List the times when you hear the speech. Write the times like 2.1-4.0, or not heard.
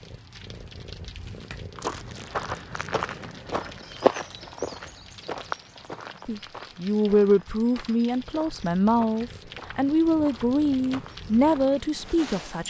6.2-12.6.